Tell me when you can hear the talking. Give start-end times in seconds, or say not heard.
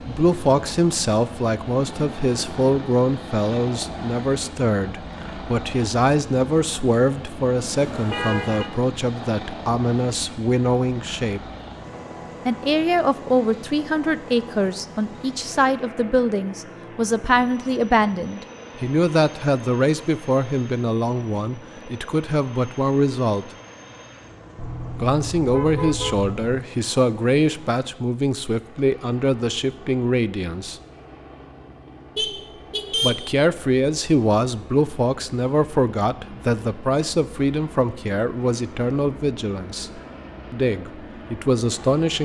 0.0-11.4, 12.4-23.5, 24.9-30.8, 33.0-42.2.